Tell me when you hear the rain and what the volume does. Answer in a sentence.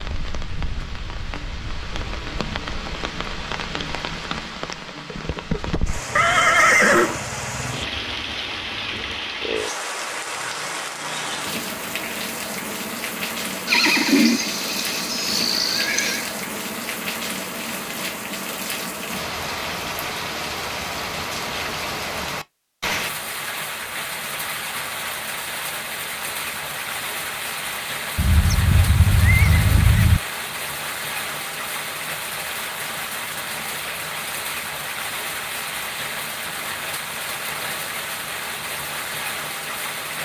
The rain can be heard from 0.0 to 40.2 s, at a steady volume.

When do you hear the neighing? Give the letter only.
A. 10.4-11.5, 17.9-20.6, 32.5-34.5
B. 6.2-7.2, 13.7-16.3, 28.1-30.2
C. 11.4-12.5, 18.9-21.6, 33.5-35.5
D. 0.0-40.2
B.